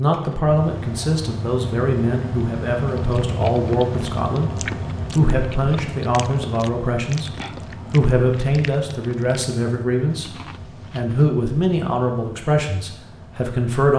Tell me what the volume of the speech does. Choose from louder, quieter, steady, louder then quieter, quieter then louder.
steady.